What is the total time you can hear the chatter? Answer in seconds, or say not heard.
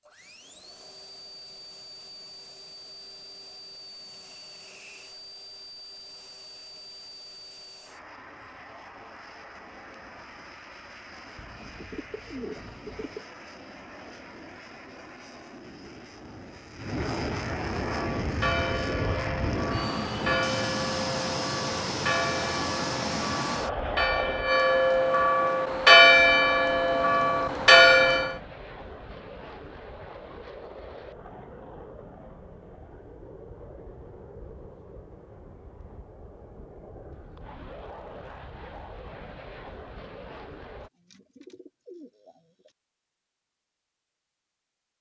not heard.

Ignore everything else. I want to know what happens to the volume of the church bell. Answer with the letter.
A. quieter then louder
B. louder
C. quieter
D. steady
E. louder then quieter
B.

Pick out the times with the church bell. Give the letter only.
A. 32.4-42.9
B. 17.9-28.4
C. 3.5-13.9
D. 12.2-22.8
B.